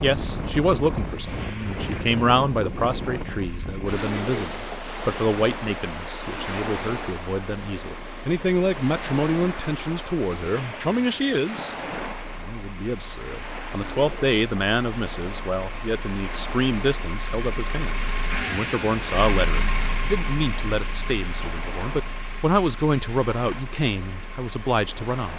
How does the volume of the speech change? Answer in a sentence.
The volume of the speech stays about the same.